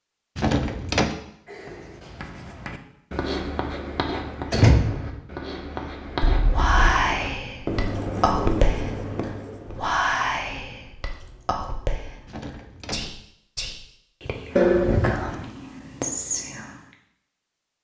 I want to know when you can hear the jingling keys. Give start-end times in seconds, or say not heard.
0.3-1.1, 6.2-7.0, 12.2-13.2.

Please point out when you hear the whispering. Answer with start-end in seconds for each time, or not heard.
6.0-16.8.